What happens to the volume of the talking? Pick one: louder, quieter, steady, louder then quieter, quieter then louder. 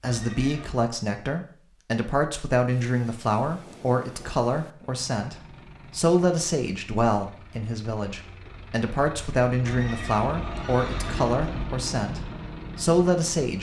steady.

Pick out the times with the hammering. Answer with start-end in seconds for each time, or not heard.
not heard.